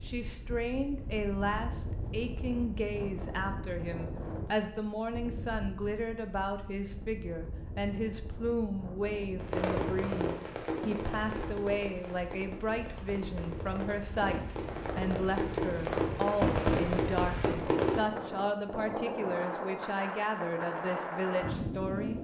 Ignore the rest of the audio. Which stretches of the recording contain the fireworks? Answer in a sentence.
You can hear the fireworks from 9.4 to 18.0 s.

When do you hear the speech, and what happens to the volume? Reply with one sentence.
The speech can be heard from 0.0 to 22.1 s, at a steady volume.